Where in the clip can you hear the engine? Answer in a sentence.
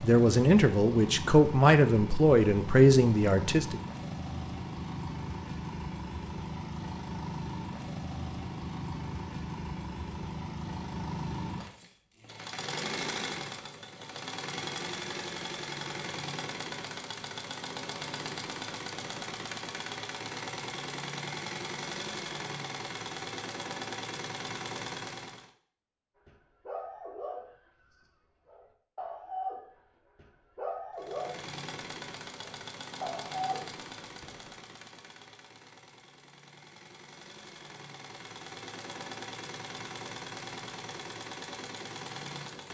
The engine can be heard from 0.0 to 25.5 s and from 30.9 to 42.7 s.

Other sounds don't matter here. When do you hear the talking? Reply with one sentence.
You can hear the talking from 0.0 to 3.8 s.